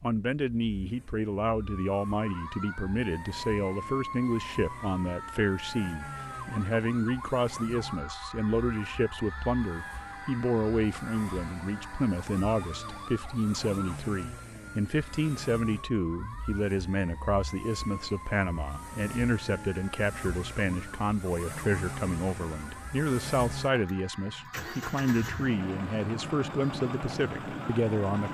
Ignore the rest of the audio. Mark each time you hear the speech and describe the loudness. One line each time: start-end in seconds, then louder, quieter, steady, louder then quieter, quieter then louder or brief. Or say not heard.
0.0-28.3 steady.